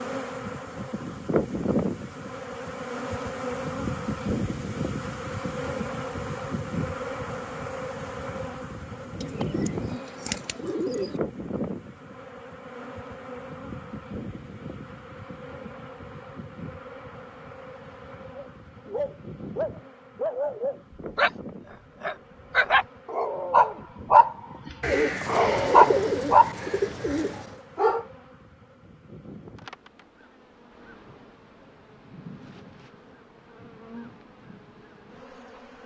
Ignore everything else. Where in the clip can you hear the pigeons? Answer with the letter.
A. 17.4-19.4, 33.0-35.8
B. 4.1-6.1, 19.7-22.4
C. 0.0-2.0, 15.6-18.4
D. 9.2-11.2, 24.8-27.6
D.